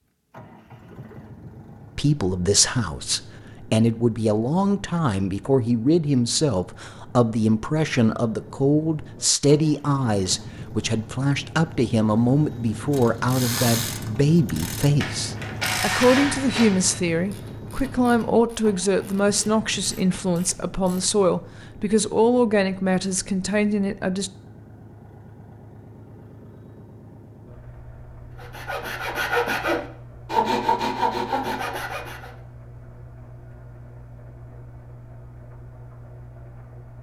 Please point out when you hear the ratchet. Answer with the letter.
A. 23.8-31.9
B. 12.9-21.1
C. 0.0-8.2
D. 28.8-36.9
B.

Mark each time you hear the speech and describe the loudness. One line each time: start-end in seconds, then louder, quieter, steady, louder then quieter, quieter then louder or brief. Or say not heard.
1.9-24.3 steady.